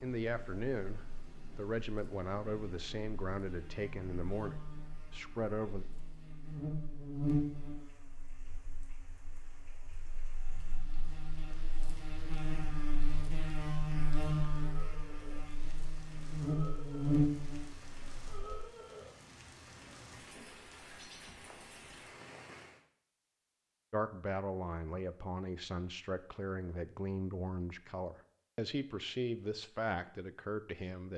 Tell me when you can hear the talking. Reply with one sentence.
The talking can be heard from 0.0 to 5.8 s and from 23.9 to 31.1 s.